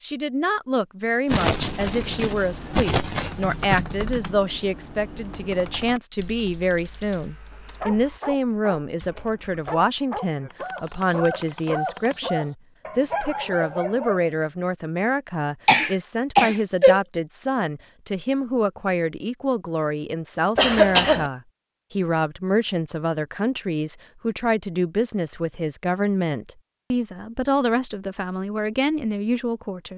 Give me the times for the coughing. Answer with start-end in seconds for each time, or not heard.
1.3-3.8, 15.7-17.0, 20.6-21.3.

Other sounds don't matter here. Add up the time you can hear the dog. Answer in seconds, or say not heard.
7 s.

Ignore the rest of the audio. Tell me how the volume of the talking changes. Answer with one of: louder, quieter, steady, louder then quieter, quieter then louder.
steady.